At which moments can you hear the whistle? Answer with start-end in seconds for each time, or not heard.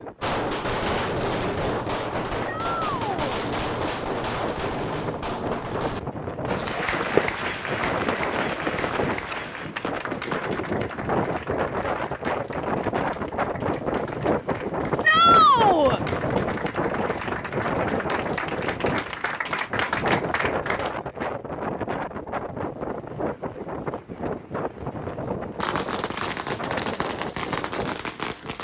not heard.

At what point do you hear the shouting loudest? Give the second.
15 s.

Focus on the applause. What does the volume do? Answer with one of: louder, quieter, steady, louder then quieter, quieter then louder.
quieter then louder.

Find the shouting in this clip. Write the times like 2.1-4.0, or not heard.
2.5-3.4, 15.0-16.0.